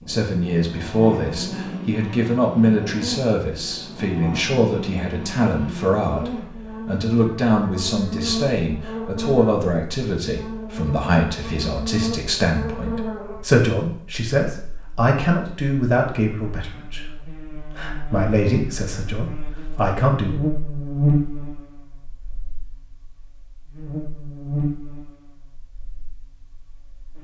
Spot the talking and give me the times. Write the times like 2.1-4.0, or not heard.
0.1-20.4.